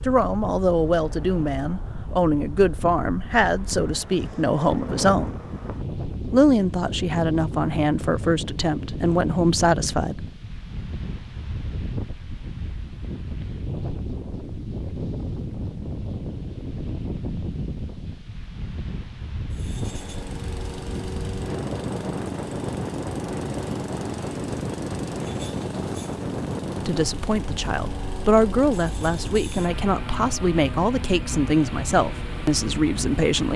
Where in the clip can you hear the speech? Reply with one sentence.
The speech can be heard from 0.1 to 5.4 s, from 6.3 to 10.2 s and from 26.9 to 33.5 s.